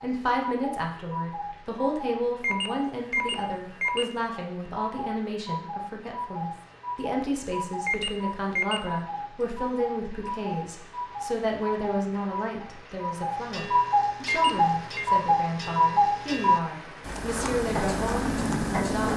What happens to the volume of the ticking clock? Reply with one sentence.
The loudness of the ticking clock goes up.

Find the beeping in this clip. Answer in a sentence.
The beeping can be heard from 2.4 to 4.1 s, from 7.8 to 8.8 s and from 14.3 to 15.1 s.